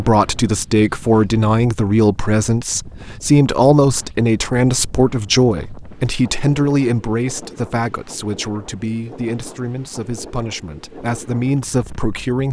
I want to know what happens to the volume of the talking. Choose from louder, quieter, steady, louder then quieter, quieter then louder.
quieter.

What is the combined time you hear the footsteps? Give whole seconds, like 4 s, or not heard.
not heard.